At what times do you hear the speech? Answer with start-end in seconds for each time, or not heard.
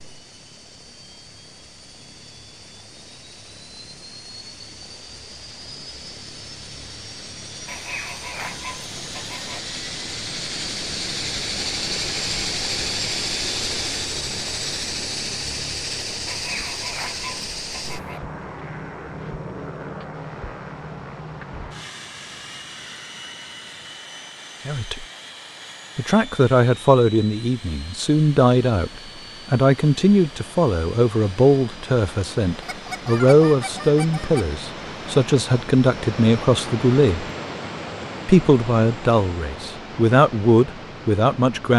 24.6-25.1, 25.9-37.2, 38.2-41.7.